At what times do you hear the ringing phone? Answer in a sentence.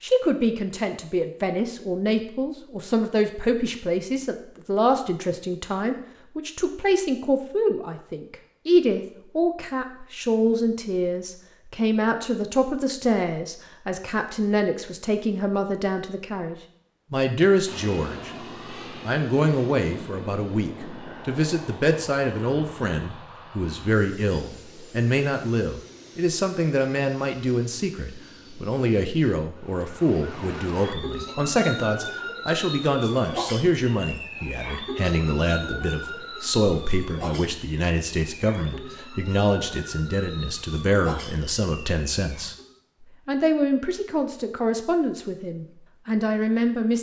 The ringing phone can't be heard in this clip.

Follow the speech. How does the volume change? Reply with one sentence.
The volume of the speech stays about the same.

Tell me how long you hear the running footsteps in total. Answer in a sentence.
The running footsteps can't be heard in this clip.